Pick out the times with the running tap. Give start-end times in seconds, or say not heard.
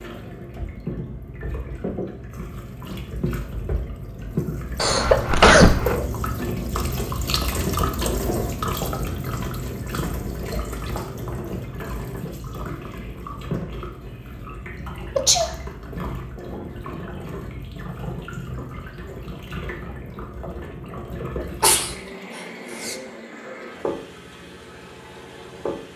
0.0-25.9.